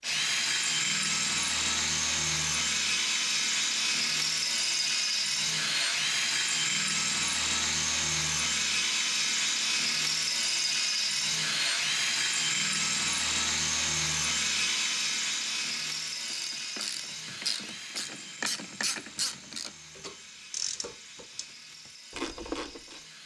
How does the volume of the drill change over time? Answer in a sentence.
The loudness of the drill goes down.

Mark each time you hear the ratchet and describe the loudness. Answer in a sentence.
You can hear the ratchet from 16.3 to 23.0 s, at a steady volume.